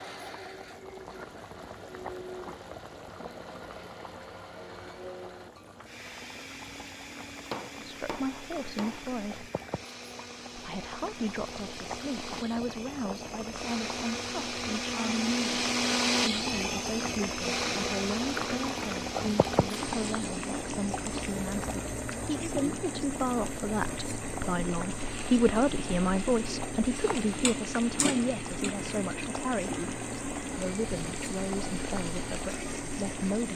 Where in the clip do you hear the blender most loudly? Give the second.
16 s.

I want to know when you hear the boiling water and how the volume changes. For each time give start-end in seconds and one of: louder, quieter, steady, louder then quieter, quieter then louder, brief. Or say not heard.
0.0-33.5 louder.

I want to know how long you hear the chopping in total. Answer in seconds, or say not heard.
2 s.